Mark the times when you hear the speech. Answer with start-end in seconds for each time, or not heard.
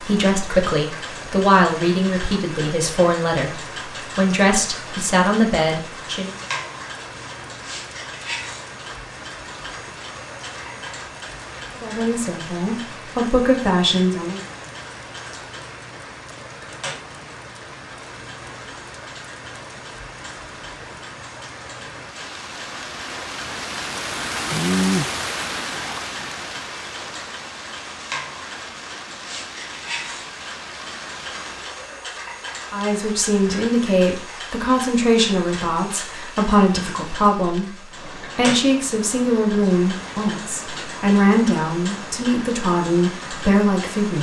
0.0-6.3, 11.8-14.4, 32.7-44.1.